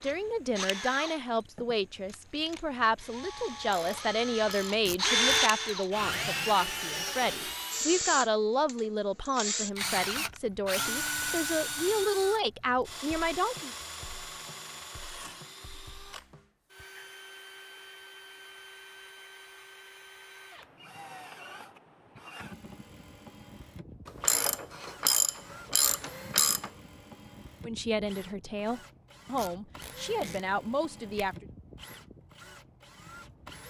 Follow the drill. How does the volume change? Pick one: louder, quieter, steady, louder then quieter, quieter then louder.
quieter.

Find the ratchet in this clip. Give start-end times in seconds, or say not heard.
3.5-4.8, 24.1-26.7.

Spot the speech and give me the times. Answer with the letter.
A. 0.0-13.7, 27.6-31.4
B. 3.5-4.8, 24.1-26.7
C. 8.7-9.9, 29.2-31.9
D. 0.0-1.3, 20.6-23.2
A.